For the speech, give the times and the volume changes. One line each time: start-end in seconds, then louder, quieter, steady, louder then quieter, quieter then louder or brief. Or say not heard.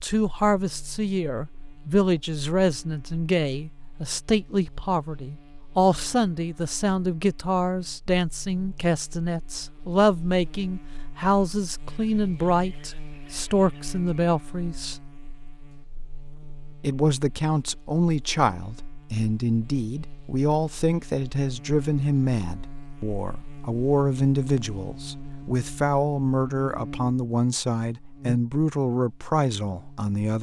0.0-14.9 steady
16.8-30.3 steady.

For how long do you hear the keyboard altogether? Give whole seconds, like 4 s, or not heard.
not heard.